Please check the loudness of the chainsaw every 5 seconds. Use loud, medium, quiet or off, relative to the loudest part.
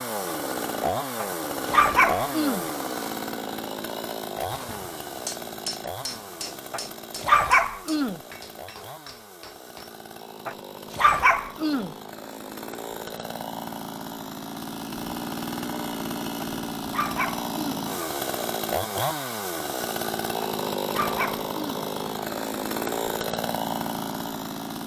loud, medium, medium, loud, loud.